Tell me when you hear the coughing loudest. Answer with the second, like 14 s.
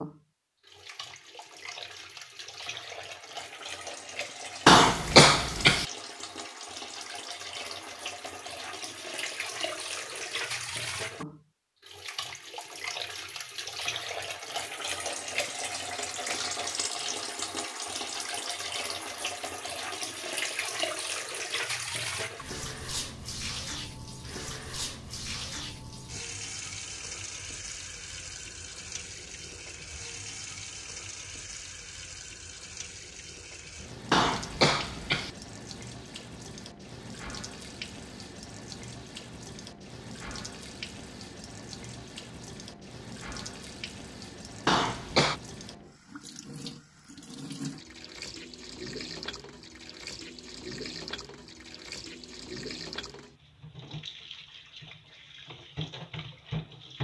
5 s.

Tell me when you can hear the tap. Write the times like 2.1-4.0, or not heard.
0.0-57.0.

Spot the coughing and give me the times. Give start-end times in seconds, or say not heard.
4.7-5.8, 34.1-35.3, 44.6-45.4.